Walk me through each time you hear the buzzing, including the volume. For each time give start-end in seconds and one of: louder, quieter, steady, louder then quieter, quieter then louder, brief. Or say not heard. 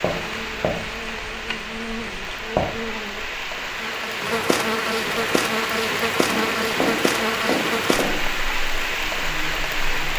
0.1-10.1 louder then quieter.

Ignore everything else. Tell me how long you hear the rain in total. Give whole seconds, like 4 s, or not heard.
10 s.